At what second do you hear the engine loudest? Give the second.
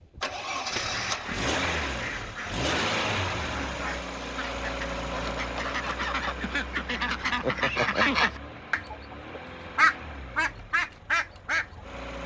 3 s.